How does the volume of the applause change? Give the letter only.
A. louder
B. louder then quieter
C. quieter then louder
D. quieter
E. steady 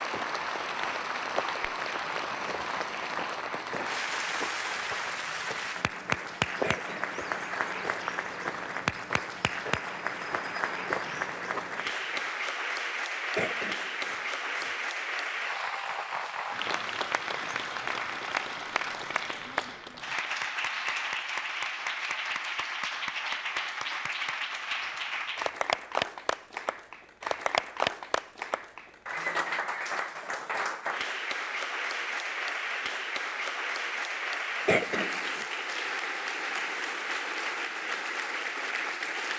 E.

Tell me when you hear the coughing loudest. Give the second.
35 s.